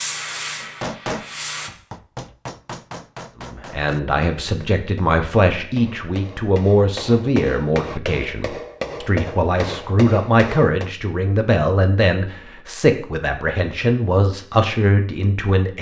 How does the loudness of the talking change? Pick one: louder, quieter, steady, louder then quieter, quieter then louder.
steady.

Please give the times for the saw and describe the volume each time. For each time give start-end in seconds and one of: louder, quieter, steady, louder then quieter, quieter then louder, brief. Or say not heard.
not heard.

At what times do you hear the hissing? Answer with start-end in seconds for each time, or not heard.
0.0-1.7.